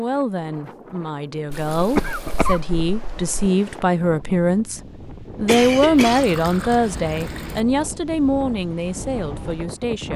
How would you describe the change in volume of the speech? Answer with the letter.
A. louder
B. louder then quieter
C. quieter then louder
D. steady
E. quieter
B.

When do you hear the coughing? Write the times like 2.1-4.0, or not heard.
1.8-3.5, 5.5-6.2.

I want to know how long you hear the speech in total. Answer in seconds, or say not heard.
10 s.